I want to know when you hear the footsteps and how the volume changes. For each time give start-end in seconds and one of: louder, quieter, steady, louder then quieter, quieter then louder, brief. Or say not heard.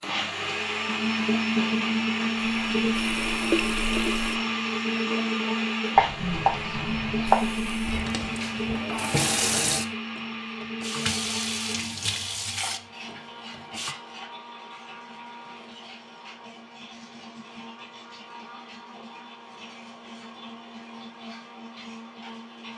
not heard.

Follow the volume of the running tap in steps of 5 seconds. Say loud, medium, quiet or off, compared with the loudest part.
loud, loud, loud, off, off.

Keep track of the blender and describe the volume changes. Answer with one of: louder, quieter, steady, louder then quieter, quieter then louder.
quieter.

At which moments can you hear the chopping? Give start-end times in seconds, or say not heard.
6.0-7.3.